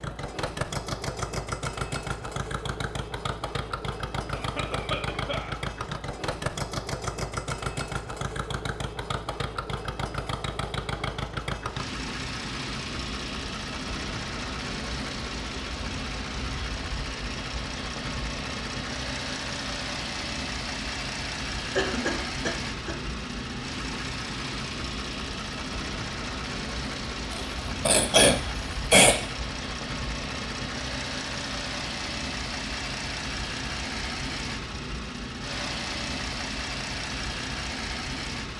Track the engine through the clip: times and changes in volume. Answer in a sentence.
You can hear the engine from 0.0 to 38.5 s, at a steady volume.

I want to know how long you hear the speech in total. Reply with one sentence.
The speech can't be heard in this clip.